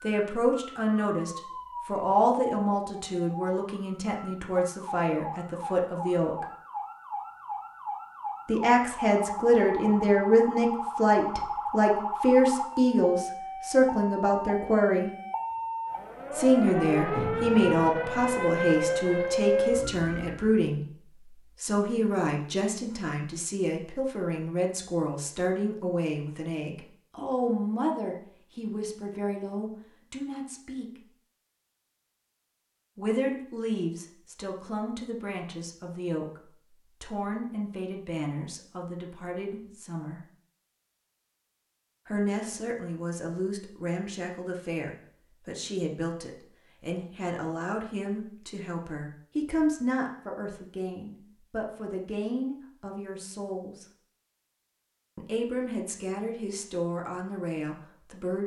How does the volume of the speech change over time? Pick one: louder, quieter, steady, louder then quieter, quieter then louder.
quieter.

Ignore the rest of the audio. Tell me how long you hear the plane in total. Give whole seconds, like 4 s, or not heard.
not heard.